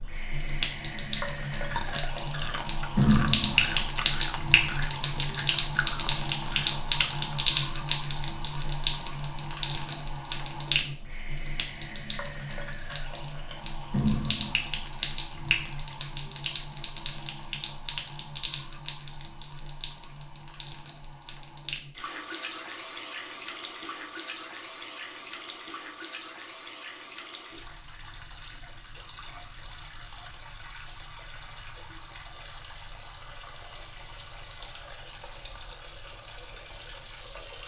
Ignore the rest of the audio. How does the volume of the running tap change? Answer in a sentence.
The volume of the running tap goes down.